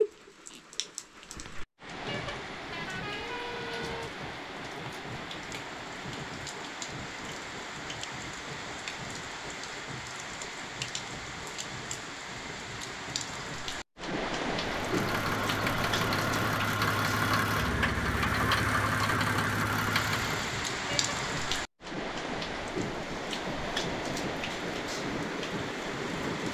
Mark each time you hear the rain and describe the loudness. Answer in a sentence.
The rain can be heard from 0.0 to 26.4 s, getting louder.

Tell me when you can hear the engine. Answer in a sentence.
You can hear the engine from 14.8 to 20.6 s.